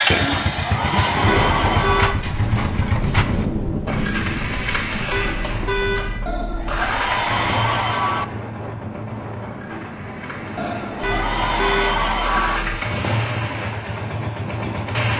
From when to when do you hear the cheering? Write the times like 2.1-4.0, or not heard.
0.1-2.1, 6.2-8.2, 10.6-12.6.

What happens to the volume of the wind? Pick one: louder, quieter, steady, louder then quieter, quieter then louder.
quieter.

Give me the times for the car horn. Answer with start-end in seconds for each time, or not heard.
1.2-2.2, 5.1-6.8, 11.0-12.8.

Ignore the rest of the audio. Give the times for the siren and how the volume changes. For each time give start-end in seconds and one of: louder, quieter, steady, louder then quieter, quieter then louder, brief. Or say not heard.
not heard.